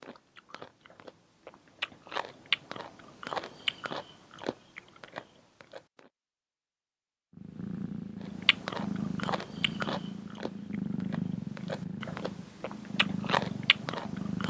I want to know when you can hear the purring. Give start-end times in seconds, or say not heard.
7.3-14.4.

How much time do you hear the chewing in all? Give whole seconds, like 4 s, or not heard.
12 s.